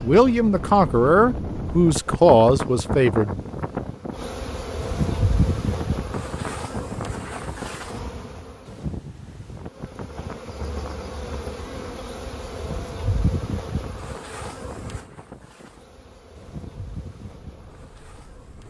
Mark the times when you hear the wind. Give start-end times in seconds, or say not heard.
0.0-18.6.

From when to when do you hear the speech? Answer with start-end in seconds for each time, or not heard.
0.0-3.4.